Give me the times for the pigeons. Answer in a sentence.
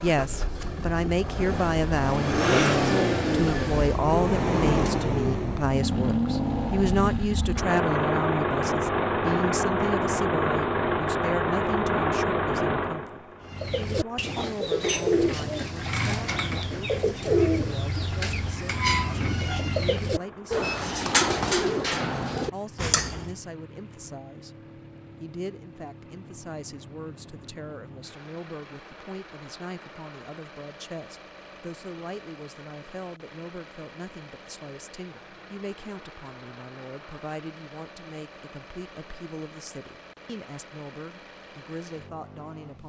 The pigeons can be heard from 13.4 to 23.4 s.